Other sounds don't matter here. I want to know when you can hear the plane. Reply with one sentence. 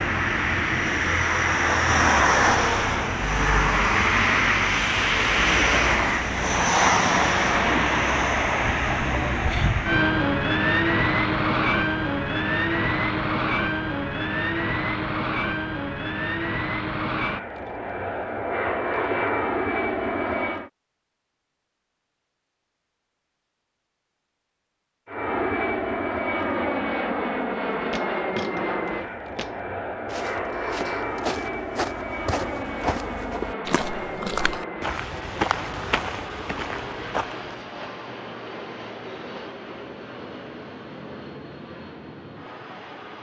The plane can be heard from 0.0 to 20.7 s and from 25.1 to 43.1 s.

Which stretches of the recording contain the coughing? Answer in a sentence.
You can't hear the coughing here.